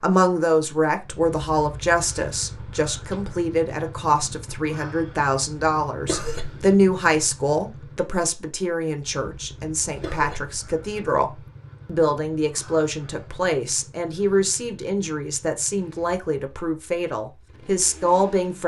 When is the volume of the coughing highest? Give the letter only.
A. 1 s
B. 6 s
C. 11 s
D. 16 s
B.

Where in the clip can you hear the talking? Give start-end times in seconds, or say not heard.
0.0-18.6.